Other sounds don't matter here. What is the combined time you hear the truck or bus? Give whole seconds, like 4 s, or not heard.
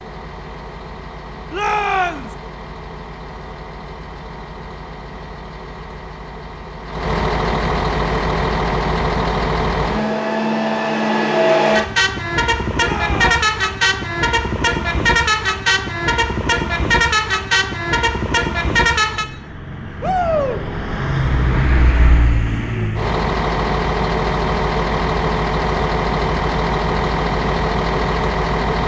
29 s.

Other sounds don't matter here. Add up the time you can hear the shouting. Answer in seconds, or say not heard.
2 s.